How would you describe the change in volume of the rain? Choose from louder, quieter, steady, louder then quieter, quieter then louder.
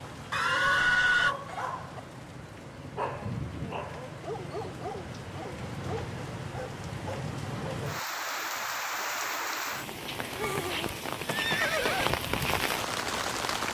louder.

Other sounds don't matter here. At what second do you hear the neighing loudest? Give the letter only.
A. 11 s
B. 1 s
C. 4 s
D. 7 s
B.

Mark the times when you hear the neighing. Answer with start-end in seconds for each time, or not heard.
0.3-1.4, 5.5-6.2, 10.3-12.1.